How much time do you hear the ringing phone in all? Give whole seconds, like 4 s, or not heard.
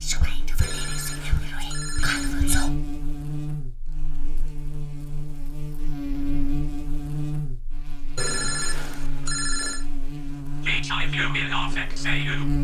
4 s.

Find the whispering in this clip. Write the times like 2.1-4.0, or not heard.
0.0-2.7, 10.6-12.4.